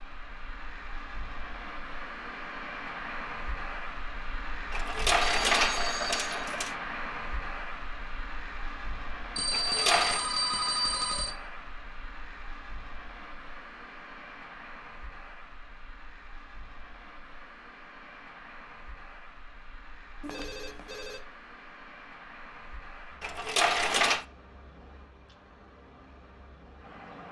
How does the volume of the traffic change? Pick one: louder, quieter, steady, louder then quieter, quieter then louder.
quieter.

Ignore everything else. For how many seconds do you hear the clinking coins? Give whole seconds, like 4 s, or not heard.
4 s.